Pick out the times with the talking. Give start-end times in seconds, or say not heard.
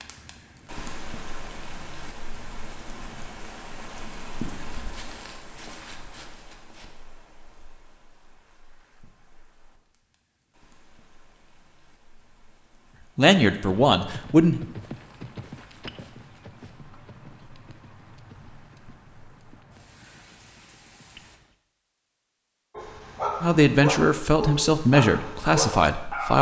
13.2-14.6, 23.4-26.3.